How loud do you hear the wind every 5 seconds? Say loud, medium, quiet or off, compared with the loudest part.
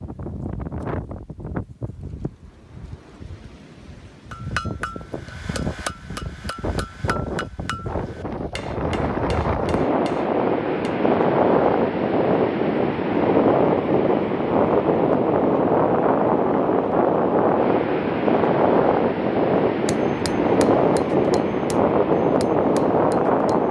quiet, medium, loud, loud, loud.